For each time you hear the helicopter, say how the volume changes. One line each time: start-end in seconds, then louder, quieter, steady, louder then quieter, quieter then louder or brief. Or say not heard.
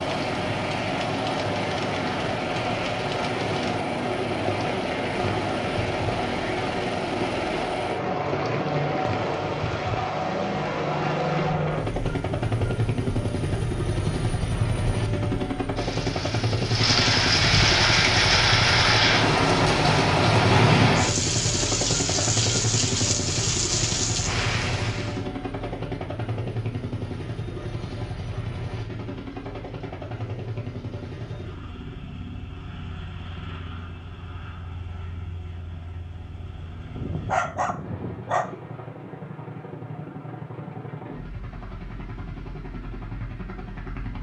0.0-44.1 quieter.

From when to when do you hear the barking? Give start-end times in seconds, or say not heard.
37.0-38.5.